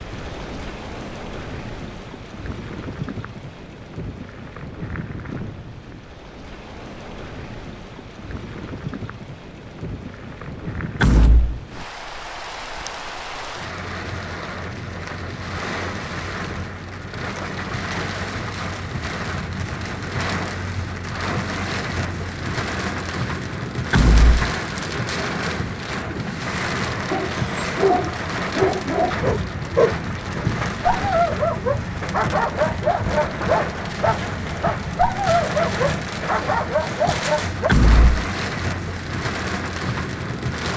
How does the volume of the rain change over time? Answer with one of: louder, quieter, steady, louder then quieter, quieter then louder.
louder.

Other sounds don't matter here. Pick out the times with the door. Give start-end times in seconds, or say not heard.
11.0-11.6, 23.9-24.4, 37.6-38.2.